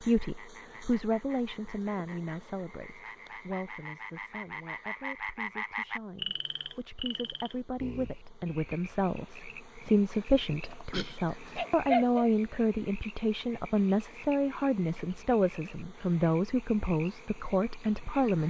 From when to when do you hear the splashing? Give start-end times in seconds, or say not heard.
not heard.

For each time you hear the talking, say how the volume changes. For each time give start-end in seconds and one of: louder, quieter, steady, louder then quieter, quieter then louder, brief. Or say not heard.
0.0-18.4 quieter then louder.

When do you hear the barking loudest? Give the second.
12 s.